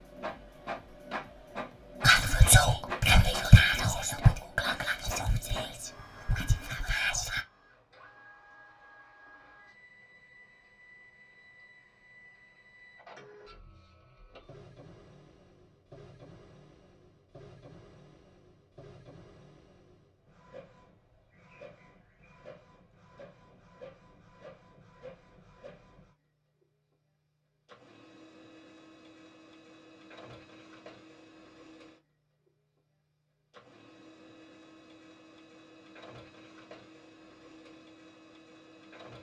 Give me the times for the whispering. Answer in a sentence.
The whispering can be heard from 2.0 to 7.5 s.